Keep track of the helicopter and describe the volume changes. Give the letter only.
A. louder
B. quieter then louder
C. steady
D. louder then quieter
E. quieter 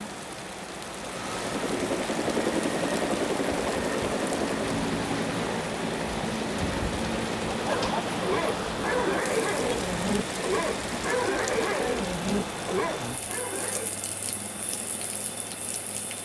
E.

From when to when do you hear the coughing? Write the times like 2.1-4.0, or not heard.
not heard.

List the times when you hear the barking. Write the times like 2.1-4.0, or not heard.
7.6-13.9.